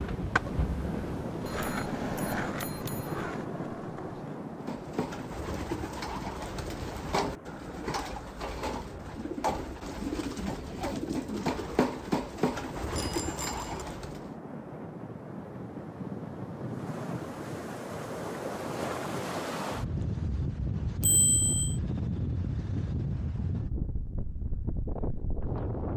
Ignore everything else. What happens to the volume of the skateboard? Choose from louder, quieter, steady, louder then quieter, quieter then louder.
louder then quieter.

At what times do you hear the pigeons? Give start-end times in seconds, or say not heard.
4.4-14.3.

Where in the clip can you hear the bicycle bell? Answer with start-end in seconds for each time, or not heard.
1.4-3.5, 12.9-13.8, 21.0-21.8.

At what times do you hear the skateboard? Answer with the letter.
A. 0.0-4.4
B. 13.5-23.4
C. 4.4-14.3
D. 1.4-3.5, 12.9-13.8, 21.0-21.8
A.